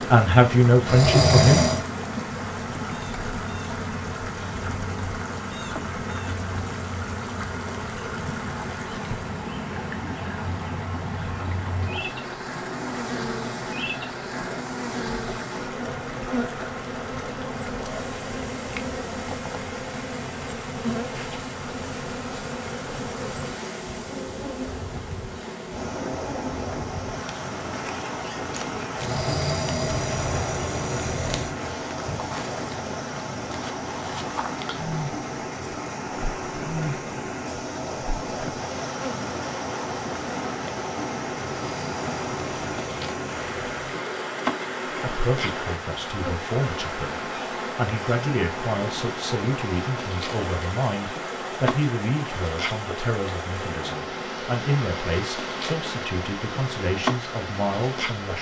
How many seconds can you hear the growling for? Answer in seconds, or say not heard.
6 s.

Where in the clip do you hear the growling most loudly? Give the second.
1 s.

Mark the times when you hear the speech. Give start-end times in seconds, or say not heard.
0.1-1.6, 44.9-58.3.